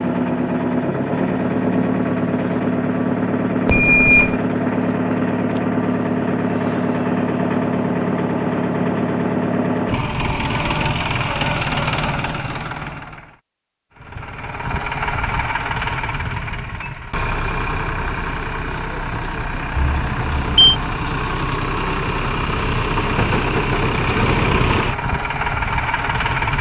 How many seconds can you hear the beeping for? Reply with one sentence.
You can hear the beeping for 2 seconds altogether.